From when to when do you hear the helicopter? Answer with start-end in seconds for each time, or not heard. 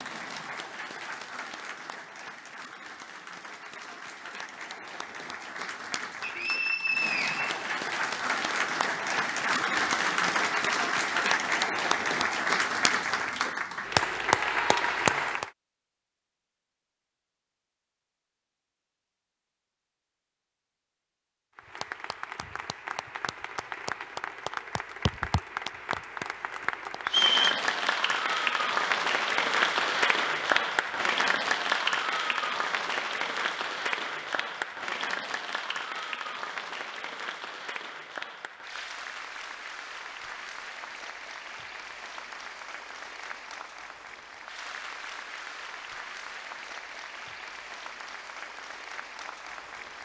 not heard.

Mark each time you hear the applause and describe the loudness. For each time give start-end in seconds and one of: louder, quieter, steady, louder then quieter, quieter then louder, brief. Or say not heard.
0.0-15.5 louder
21.6-50.0 louder then quieter.